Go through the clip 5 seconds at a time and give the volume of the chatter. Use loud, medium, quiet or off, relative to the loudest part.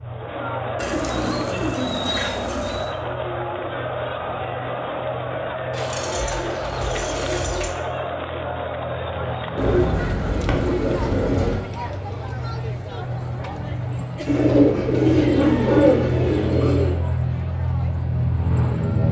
loud, loud, medium, quiet.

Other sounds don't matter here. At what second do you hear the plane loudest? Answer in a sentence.
The volume of the plane peaks at 19 seconds.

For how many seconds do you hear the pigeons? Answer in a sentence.
You can hear the pigeons for 9 seconds altogether.